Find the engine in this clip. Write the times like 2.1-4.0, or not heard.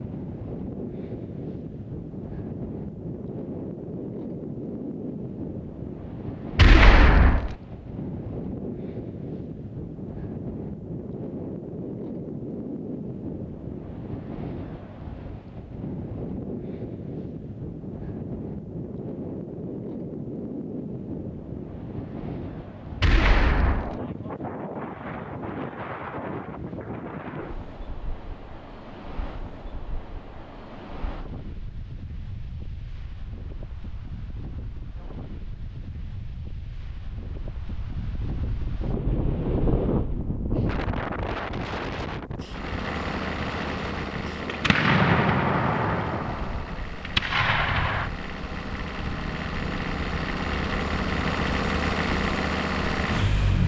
42.4-53.6.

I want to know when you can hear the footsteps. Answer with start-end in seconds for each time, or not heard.
not heard.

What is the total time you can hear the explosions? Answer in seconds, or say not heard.
6 s.